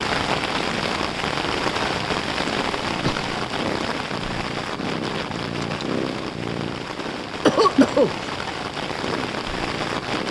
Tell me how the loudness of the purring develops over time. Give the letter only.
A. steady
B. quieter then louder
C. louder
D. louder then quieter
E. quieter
D.